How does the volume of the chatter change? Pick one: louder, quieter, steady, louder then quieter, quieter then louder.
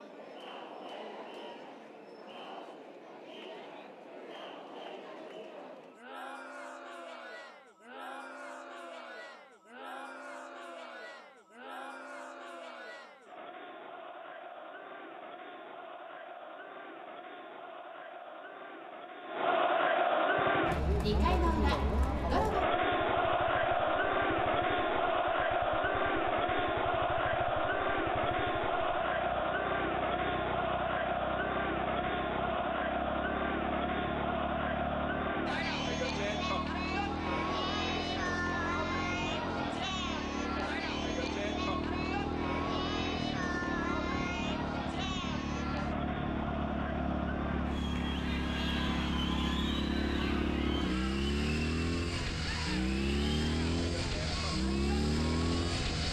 louder then quieter.